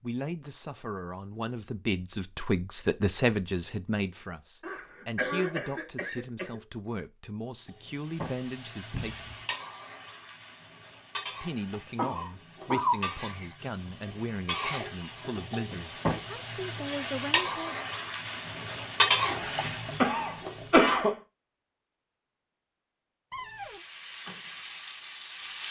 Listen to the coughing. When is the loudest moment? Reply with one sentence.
The loudest moment of the coughing is at 21 seconds.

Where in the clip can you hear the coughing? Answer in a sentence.
The coughing can be heard from 4.6 to 6.6 s, from 11.9 to 13.1 s and from 19.4 to 21.1 s.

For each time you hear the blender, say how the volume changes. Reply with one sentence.
You can't hear the blender here.